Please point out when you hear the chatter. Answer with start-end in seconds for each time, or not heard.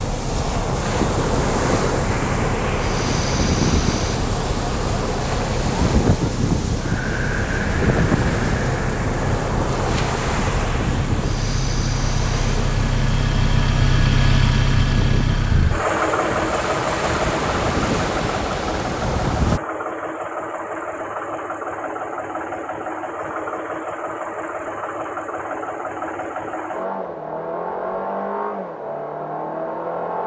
not heard.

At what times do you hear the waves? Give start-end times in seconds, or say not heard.
0.0-19.6.